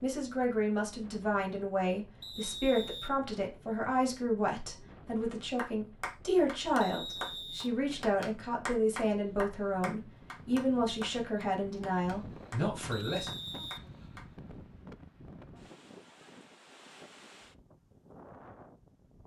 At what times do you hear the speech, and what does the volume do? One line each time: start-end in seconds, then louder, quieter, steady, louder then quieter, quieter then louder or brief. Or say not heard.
0.0-13.3 steady.